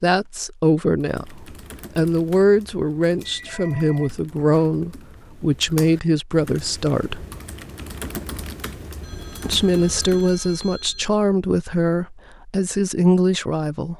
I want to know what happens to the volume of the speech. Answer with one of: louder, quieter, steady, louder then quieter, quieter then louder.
steady.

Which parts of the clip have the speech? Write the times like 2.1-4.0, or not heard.
0.0-7.2, 9.4-13.9.